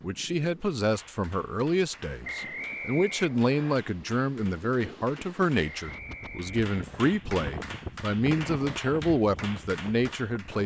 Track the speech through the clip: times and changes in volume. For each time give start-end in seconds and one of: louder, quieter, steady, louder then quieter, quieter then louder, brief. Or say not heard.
0.0-10.6 steady.